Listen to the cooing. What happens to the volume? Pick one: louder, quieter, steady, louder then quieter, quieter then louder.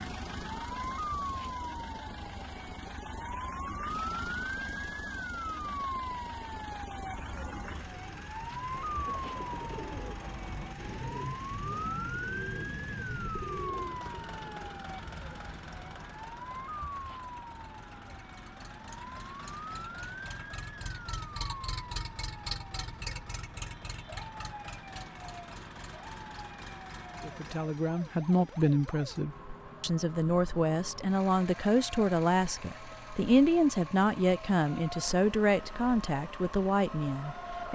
steady.